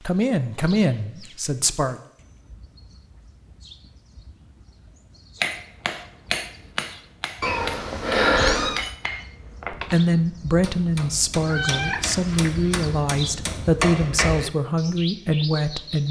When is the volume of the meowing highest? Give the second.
8 s.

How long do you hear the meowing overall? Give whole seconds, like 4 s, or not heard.
4 s.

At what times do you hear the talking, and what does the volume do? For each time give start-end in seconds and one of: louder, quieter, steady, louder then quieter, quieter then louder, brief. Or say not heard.
0.1-2.0 brief
9.7-16.0 steady.